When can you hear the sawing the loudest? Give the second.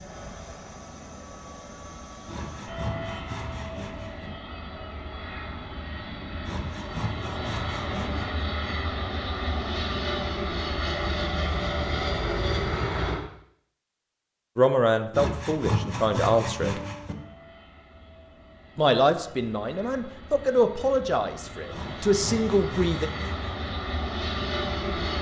16 s.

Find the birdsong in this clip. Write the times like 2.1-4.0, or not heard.
not heard.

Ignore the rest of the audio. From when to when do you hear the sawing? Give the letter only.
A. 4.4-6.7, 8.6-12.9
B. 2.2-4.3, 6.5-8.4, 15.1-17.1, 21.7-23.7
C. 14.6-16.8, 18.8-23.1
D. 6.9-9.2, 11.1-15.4
B.